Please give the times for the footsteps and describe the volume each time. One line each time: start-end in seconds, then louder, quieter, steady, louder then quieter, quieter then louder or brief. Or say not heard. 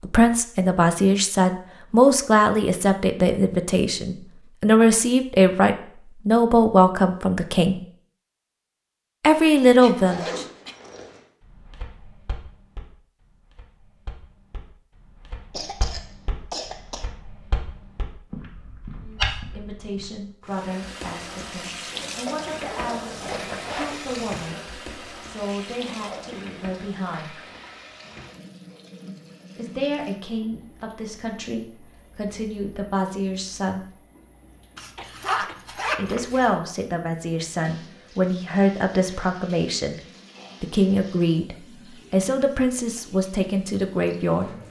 11.6-20.1 louder.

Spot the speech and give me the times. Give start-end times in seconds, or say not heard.
0.0-7.8, 9.2-10.4, 19.0-27.4, 29.6-33.9, 36.0-40.0, 40.6-44.5.